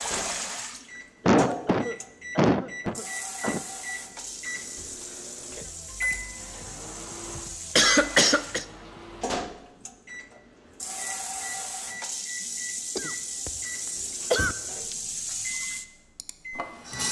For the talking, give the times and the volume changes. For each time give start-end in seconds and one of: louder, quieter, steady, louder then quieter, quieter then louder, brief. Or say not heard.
not heard.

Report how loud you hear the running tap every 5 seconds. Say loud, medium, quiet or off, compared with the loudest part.
loud, medium, loud, loud.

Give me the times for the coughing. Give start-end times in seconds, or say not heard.
1.2-3.6, 7.3-8.7, 12.9-13.5, 14.3-14.9.